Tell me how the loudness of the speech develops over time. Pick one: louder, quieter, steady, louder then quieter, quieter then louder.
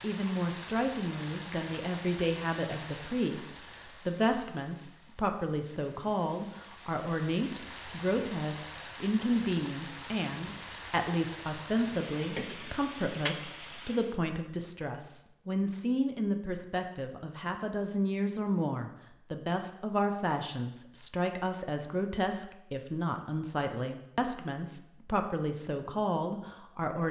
steady.